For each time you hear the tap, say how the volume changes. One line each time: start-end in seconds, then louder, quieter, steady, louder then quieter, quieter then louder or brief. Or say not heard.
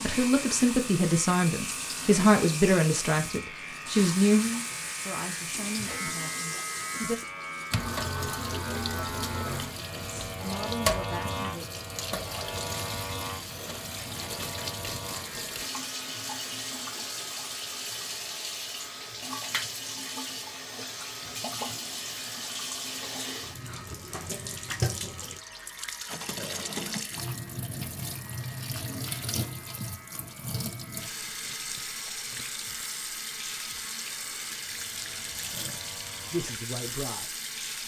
0.0-37.8 steady.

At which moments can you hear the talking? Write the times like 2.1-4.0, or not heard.
0.0-7.2, 9.8-11.7, 36.2-37.8.